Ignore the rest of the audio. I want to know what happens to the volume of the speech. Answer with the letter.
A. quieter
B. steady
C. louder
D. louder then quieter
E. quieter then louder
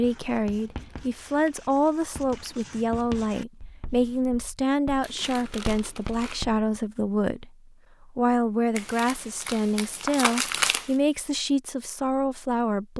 B.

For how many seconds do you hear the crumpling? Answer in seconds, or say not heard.
6 s.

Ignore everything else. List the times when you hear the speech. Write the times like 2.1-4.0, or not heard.
0.0-12.9.